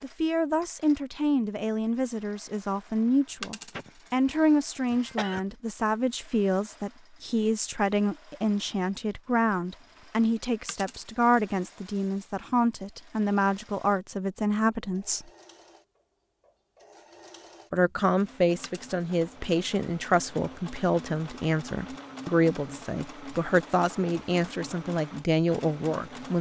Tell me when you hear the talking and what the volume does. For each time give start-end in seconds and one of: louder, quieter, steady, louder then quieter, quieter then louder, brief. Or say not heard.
0.0-15.2 steady
17.7-26.3 steady.